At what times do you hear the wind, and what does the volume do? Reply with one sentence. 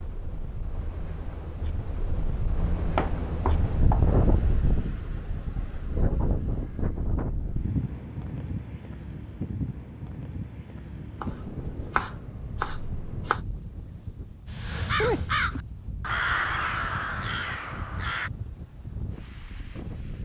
You can hear the wind from 0.0 to 20.2 s, getting quieter.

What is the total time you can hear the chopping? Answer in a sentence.
The chopping can be heard for 4 seconds in total.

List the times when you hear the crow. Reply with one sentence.
You can hear the crow from 14.4 to 18.3 s.